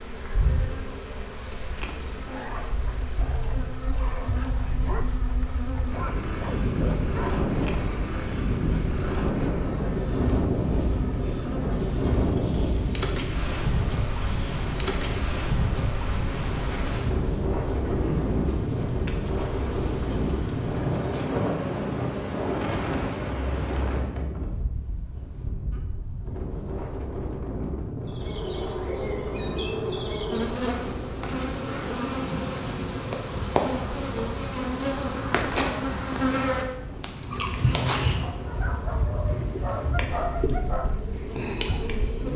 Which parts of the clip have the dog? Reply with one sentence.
The dog can be heard from 2.2 to 7.4 s and from 36.8 to 42.0 s.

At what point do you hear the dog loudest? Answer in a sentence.
The volume of the dog peaks at 40 seconds.